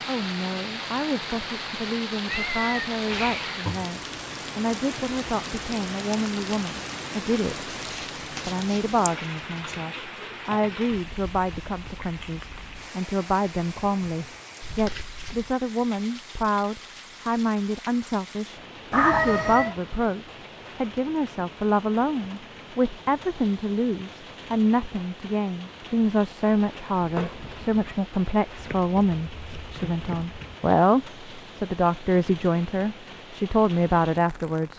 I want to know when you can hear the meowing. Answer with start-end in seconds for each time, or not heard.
2.2-3.8, 18.9-19.8, 27.0-27.9.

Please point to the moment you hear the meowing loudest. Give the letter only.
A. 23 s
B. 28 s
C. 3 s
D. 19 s
D.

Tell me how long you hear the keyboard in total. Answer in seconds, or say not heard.
not heard.